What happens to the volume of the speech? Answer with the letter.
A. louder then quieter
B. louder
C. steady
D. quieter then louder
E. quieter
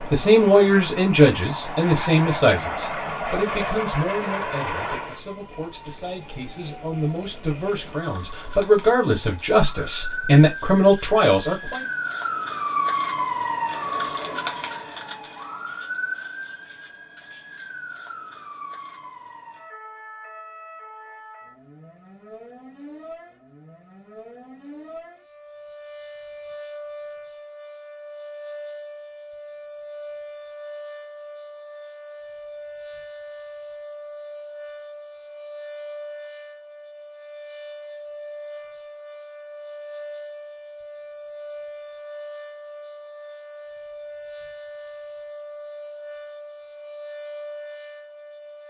D.